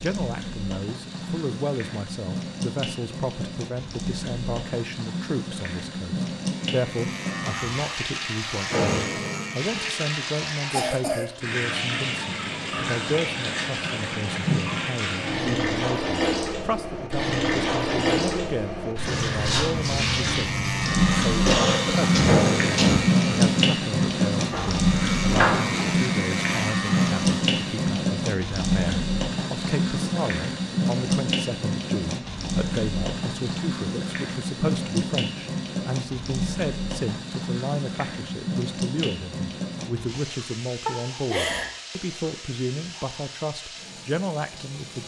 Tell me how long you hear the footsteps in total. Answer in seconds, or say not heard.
not heard.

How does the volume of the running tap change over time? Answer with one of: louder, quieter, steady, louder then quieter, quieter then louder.
louder then quieter.